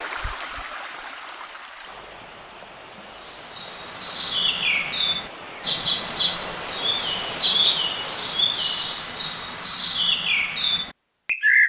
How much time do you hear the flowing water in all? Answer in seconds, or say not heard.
10 s.